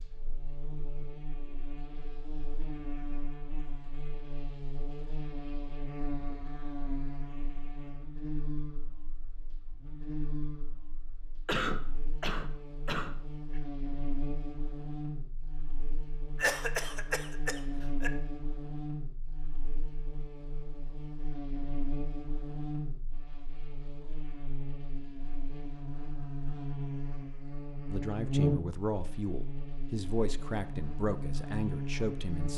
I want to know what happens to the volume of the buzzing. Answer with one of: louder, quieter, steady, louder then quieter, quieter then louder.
louder.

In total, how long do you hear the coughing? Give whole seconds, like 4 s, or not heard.
4 s.